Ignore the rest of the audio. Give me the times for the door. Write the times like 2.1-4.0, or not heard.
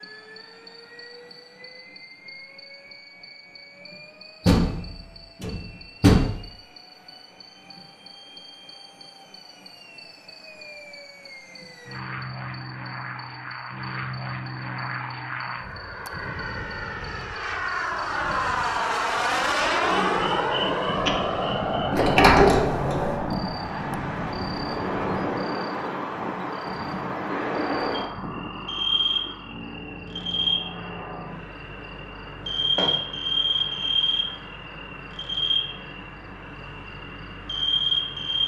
4.5-6.3, 21.9-23.2, 32.5-33.0.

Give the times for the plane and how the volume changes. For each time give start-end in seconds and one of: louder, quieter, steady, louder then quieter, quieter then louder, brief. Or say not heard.
0.0-38.4 louder then quieter.